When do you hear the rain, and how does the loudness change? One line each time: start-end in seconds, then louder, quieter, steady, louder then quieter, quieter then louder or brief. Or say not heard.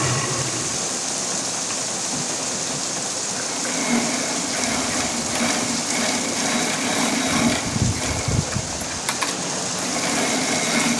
0.0-10.9 steady.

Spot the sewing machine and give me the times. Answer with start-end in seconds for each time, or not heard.
0.0-10.9.